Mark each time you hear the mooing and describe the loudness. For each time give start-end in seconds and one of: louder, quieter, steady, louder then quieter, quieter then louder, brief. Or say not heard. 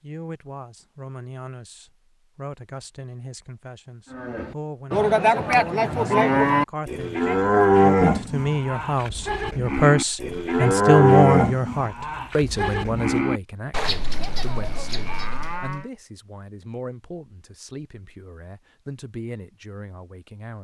4.1-15.8 quieter.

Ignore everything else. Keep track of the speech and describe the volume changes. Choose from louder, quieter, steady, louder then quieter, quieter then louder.
louder then quieter.